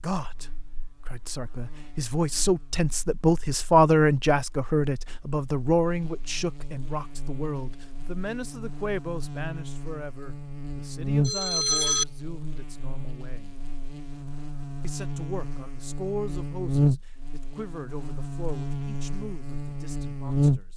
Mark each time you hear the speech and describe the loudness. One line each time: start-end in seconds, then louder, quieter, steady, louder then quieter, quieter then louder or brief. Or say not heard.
0.0-13.6 louder then quieter
14.8-20.7 quieter.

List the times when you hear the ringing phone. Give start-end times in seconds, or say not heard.
11.2-12.1.